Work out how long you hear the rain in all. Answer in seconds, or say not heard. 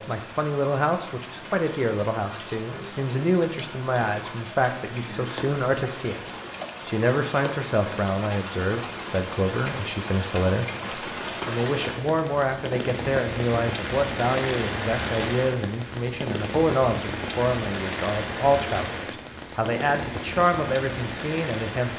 22 s.